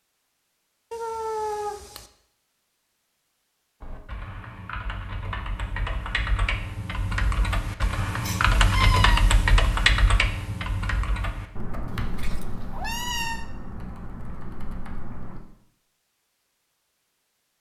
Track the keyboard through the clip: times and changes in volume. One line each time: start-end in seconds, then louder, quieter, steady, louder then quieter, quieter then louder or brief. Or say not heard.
3.8-15.4 louder then quieter.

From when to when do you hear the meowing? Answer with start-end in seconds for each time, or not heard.
0.9-2.1, 8.2-9.2, 11.8-13.4.